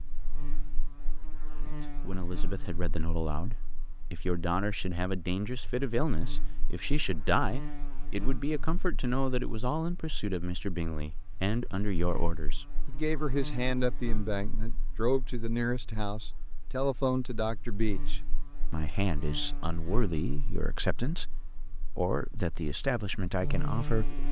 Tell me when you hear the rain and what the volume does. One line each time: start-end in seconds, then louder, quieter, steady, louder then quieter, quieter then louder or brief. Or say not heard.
not heard.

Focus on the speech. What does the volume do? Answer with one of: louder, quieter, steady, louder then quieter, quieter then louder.
steady.